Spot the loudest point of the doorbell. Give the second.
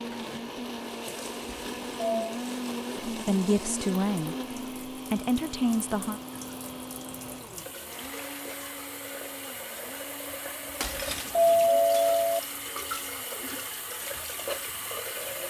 12 s.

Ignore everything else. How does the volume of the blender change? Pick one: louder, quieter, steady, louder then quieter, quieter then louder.
quieter.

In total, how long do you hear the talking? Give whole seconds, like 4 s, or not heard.
3 s.